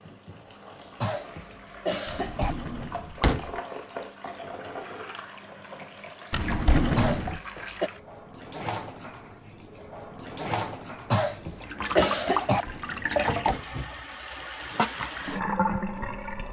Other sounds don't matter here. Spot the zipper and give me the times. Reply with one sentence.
The zipper can't be heard in this clip.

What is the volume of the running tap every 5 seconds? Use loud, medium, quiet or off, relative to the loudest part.
medium, medium, loud, loud.